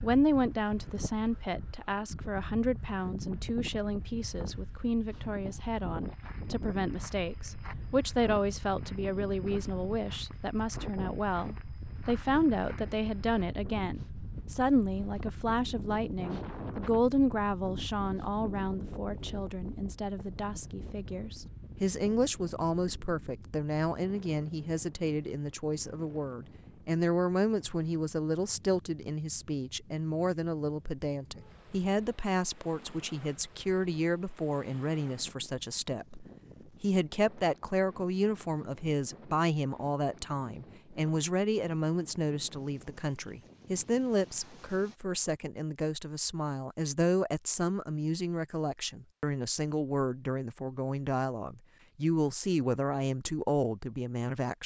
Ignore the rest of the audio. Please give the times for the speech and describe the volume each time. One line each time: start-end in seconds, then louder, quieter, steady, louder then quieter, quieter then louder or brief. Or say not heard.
0.0-54.6 steady.